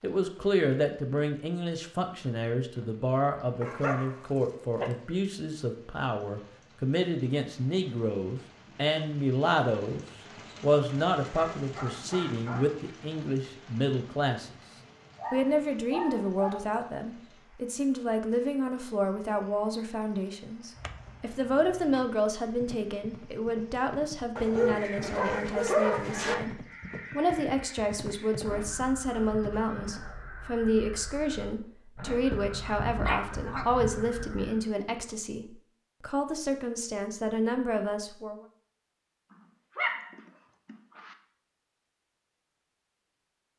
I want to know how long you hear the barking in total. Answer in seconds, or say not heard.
10 s.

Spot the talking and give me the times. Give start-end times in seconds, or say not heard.
0.0-14.5, 15.3-38.4.